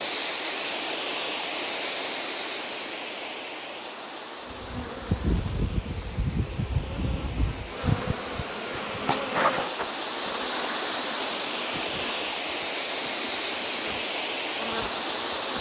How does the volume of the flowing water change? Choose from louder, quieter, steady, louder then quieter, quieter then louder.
quieter then louder.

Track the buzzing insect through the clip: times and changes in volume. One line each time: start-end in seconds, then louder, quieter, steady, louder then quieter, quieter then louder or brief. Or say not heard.
4.5-15.5 quieter.